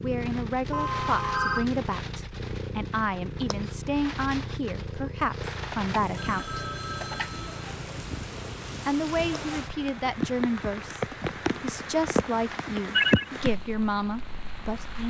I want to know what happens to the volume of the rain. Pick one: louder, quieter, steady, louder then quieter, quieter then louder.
louder.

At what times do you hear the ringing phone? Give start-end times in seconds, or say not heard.
0.7-1.6, 5.5-7.7, 12.5-13.3.